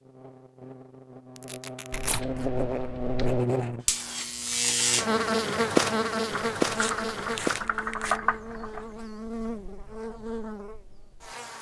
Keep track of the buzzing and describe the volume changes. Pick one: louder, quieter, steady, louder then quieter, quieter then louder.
louder then quieter.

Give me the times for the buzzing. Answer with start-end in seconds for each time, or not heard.
0.0-11.5.